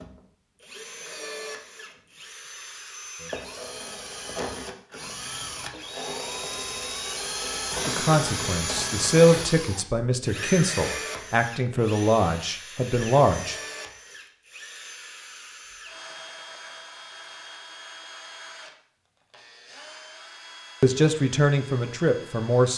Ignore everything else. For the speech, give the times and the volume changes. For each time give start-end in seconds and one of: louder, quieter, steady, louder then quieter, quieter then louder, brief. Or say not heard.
7.8-13.6 steady
20.8-22.7 brief.